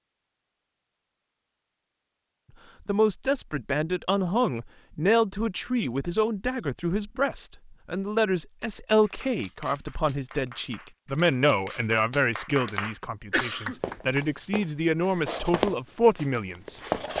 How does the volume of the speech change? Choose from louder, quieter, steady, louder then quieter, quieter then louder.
steady.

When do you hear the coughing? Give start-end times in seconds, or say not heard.
13.3-13.8.